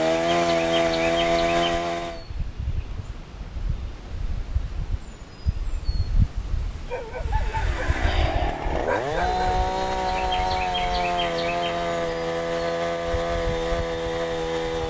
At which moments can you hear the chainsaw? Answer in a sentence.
The chainsaw can be heard from 0.0 to 2.2 s and from 7.2 to 14.8 s.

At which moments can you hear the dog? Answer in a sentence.
The dog can be heard from 6.9 to 9.5 s.